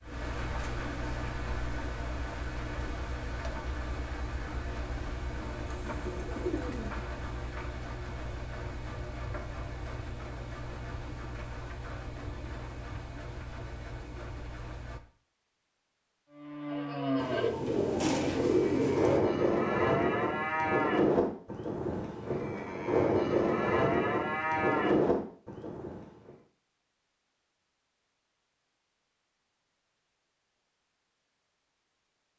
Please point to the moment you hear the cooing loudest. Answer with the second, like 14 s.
19 s.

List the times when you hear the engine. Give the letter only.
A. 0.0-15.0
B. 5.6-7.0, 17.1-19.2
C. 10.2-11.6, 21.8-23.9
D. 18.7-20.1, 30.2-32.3
A.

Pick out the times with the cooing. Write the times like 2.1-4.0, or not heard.
5.6-7.0, 17.1-19.2.